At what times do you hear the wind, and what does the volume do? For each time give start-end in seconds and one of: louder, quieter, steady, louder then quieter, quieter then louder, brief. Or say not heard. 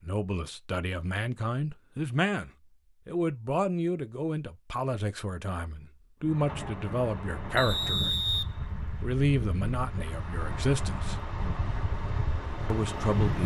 6.2-13.4 steady.